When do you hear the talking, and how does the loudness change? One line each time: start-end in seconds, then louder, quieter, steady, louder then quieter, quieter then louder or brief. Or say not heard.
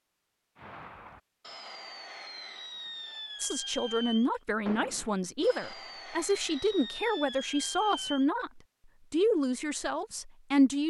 3.4-10.8 steady.